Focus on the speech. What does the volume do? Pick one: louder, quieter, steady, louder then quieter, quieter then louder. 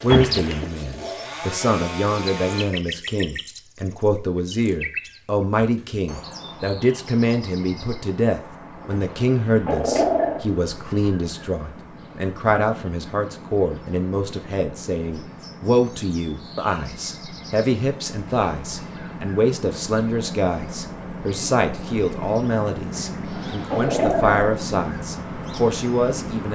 steady.